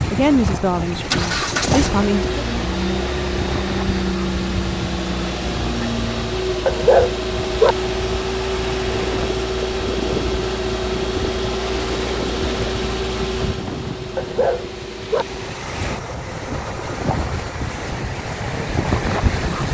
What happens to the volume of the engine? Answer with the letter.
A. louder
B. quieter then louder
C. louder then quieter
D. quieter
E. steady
D.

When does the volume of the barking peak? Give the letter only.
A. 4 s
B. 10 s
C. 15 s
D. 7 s
D.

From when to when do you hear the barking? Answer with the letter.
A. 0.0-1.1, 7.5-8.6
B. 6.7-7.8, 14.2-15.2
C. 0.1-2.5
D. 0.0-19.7
B.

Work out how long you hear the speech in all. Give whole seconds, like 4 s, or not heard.
2 s.